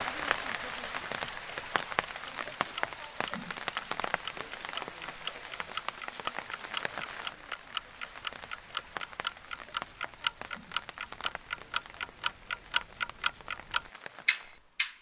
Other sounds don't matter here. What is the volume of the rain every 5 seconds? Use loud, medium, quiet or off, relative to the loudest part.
loud, medium, quiet.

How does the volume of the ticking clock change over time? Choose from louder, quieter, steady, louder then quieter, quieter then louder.
louder.